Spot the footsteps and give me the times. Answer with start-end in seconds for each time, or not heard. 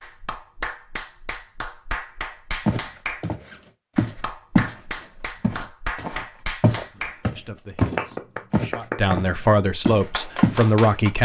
2.6-4.8, 5.4-10.7.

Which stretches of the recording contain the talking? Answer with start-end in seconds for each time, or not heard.
6.8-11.2.